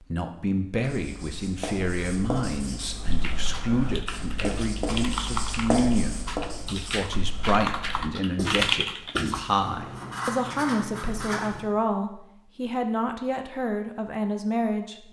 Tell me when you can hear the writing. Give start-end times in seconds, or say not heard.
0.8-11.6.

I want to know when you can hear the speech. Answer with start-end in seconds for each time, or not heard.
0.0-15.0.